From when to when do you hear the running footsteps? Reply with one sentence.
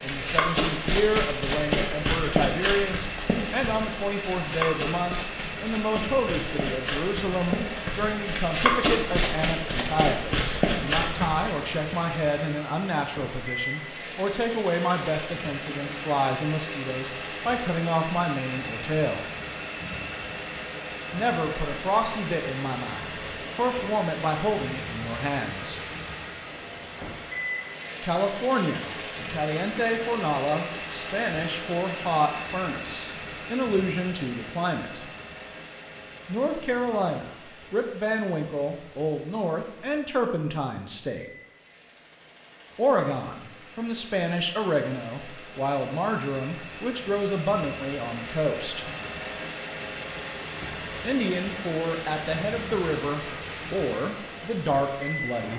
You can hear the running footsteps from 0.1 to 11.5 s.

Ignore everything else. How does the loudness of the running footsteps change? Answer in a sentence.
The volume of the running footsteps goes down, then up.